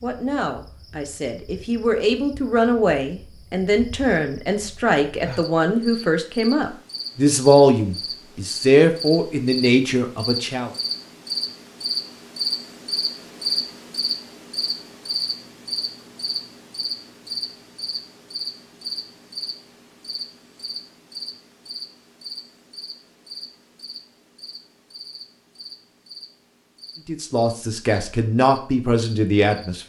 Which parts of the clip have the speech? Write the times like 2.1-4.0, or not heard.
0.0-10.7, 27.1-29.8.